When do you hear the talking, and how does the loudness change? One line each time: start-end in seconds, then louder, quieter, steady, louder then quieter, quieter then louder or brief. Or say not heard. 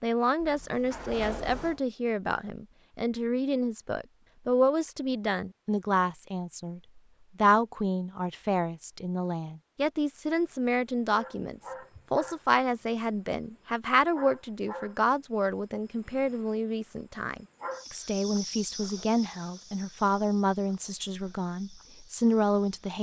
0.0-22.9 steady.